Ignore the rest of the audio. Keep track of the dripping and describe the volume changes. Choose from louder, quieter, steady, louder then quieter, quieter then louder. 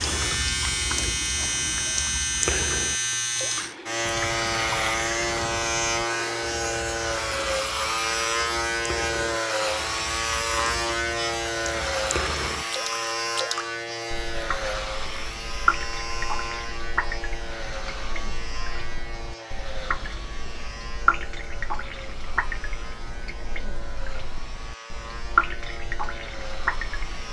quieter then louder.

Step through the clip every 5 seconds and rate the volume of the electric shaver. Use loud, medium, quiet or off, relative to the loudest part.
loud, loud, loud, medium, quiet, quiet.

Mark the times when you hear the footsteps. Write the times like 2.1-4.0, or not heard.
not heard.